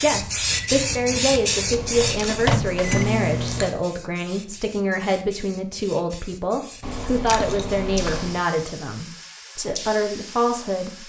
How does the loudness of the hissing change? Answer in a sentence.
The loudness of the hissing goes down, then up.